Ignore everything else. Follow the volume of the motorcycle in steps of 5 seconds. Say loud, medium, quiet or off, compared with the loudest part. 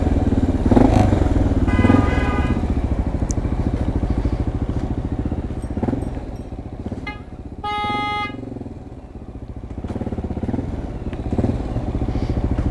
loud, medium, medium.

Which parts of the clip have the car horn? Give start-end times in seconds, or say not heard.
1.6-2.6, 7.0-8.8.